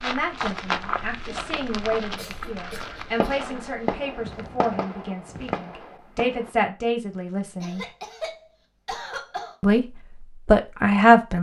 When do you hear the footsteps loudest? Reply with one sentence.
The loudest moment of the footsteps is at 1 second.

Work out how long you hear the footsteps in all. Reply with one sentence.
You can hear the footsteps for 6 seconds altogether.